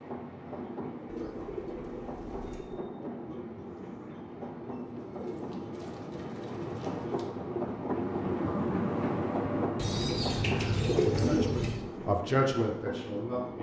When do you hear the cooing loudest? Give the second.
11 s.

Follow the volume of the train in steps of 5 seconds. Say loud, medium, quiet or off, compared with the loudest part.
medium, loud, loud.